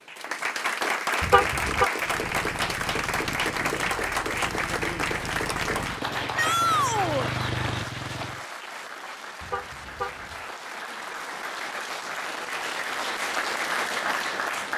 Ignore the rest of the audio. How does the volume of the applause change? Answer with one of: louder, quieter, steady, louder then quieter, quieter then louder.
quieter then louder.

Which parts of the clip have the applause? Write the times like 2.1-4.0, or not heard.
0.0-14.7.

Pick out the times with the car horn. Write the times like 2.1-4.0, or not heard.
1.2-1.9, 9.4-10.6.